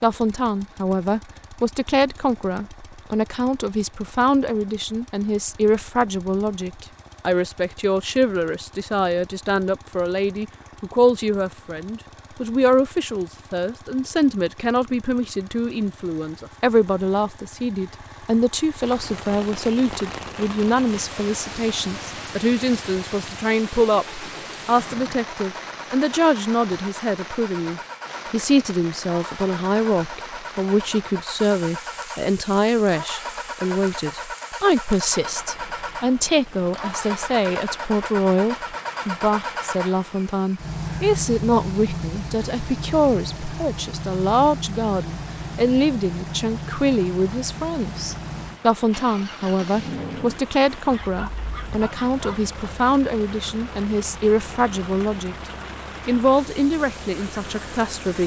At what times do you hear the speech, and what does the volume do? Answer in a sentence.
You can hear the speech from 0.0 to 55.4 s, at a steady volume; and briefly from 56.0 to 58.2 s.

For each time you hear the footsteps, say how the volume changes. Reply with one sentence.
The footsteps can't be heard in this clip.